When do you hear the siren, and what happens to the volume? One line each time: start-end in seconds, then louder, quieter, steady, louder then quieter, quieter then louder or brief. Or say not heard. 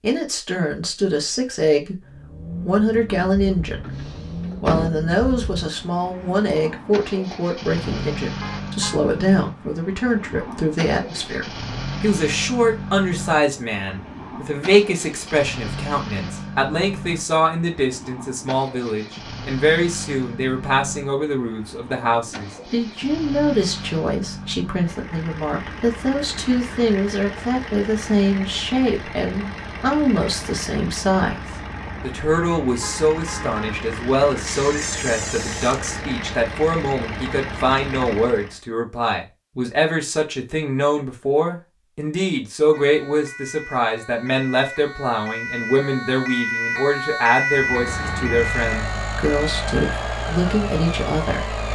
42.7-51.7 louder then quieter.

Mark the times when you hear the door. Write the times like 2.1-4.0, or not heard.
3.8-4.9, 34.5-35.8.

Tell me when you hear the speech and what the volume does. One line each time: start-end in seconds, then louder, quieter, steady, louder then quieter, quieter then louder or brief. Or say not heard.
0.0-51.7 steady.